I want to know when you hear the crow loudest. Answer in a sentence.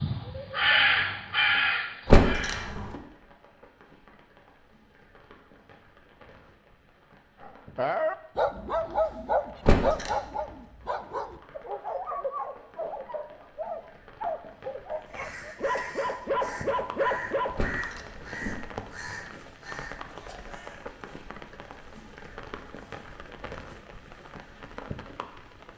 The volume of the crow peaks at 1 second.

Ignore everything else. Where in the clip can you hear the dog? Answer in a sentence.
You can hear the dog from 7.4 to 17.6 s.